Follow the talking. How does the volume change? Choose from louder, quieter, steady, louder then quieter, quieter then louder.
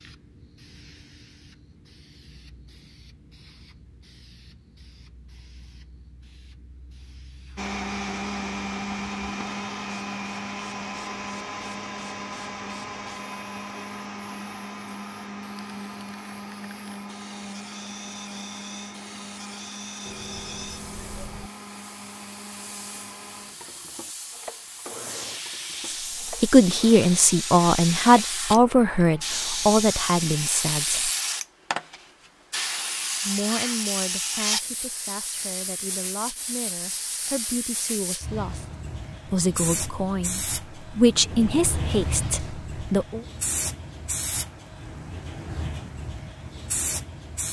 quieter then louder.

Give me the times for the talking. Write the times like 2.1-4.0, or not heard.
25.9-31.1, 33.2-38.6, 39.2-43.2.